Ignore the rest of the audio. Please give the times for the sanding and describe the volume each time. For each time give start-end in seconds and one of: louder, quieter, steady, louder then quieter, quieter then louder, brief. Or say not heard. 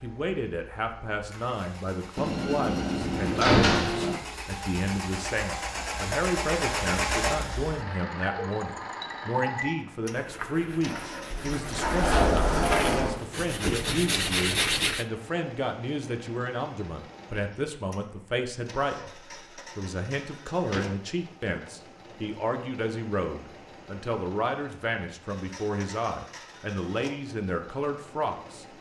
10.1-15.1 louder.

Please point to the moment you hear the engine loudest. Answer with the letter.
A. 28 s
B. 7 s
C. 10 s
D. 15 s
B.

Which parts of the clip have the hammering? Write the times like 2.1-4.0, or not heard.
not heard.